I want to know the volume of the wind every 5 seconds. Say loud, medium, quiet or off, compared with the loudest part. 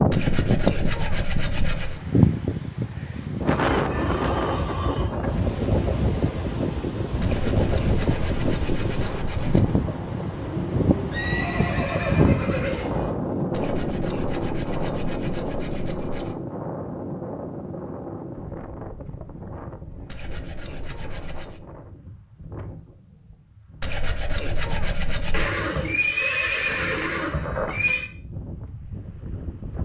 loud, loud, loud, medium, quiet, quiet.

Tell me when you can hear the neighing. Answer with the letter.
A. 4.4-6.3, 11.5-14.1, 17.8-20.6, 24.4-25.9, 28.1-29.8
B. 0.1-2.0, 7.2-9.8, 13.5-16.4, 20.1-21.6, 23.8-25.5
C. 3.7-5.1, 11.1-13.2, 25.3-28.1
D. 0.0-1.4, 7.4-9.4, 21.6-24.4
C.